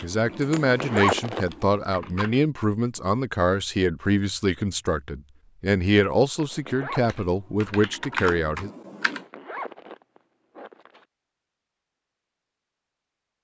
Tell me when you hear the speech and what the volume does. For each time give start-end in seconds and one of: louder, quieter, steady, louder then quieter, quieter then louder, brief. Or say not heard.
0.0-8.7 steady.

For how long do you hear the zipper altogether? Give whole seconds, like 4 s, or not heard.
4 s.